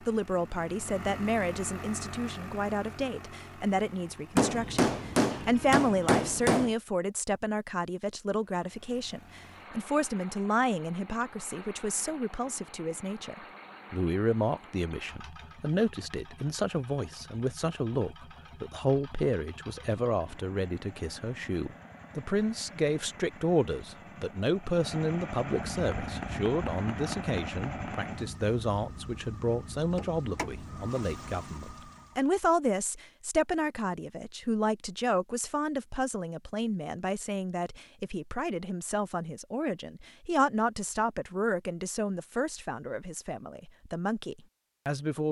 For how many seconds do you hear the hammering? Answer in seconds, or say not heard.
5 s.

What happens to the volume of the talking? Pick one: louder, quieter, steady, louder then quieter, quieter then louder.
steady.